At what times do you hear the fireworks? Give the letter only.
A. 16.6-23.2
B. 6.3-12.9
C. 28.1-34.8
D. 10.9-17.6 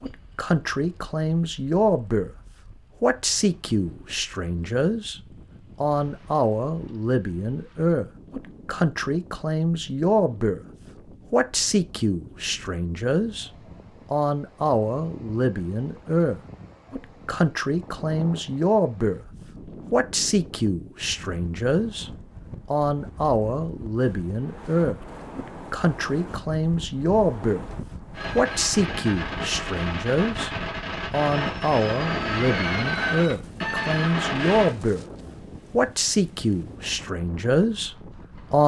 C.